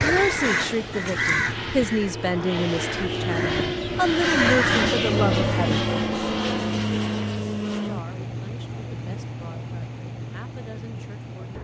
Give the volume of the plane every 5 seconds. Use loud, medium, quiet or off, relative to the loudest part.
loud, loud, medium.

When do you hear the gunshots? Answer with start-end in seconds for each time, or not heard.
not heard.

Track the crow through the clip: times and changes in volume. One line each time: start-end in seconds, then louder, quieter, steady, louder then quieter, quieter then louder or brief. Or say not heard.
0.0-5.0 quieter then louder.